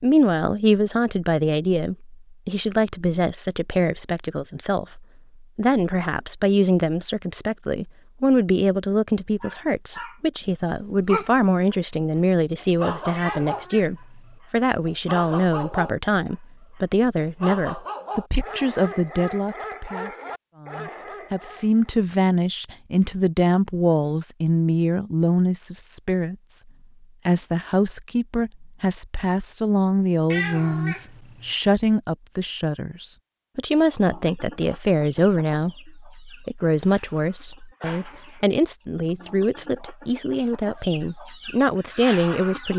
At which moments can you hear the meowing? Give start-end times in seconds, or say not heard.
13.2-14.3, 30.3-31.5.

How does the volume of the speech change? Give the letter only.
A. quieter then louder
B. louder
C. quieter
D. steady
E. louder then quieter
D.